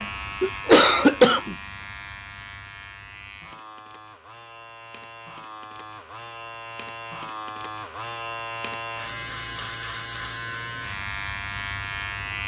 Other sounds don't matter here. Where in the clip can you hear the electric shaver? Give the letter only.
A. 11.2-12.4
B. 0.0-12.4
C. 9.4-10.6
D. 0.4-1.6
B.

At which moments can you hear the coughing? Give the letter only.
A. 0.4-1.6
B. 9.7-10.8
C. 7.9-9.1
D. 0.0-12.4
A.